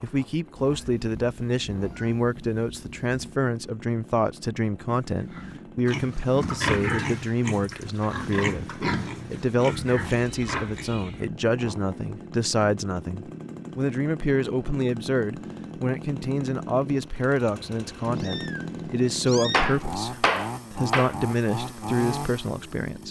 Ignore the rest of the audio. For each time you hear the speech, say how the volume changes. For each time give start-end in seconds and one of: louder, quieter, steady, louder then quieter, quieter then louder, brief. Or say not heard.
0.0-23.0 steady.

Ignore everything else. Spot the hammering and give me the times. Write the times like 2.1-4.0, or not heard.
19.5-21.1.